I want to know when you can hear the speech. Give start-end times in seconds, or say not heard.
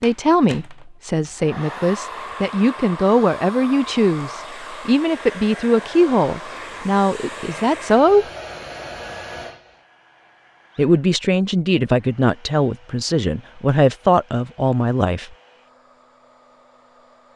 0.0-8.2, 10.8-15.3.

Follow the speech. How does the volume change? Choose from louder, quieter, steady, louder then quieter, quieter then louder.
steady.